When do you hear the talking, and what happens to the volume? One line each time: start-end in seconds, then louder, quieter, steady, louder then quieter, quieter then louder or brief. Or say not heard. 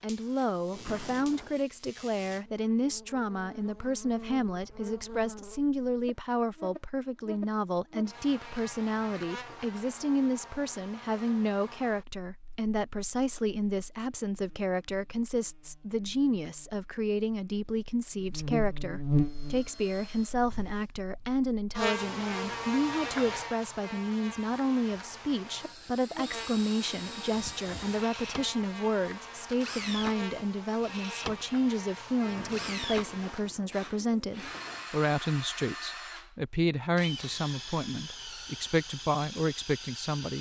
0.0-40.3 steady.